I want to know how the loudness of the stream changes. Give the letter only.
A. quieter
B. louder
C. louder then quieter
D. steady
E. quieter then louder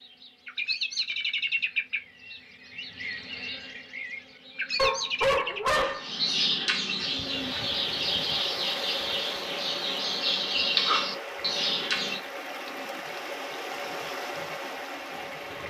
D.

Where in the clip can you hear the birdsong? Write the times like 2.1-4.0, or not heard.
0.0-12.2.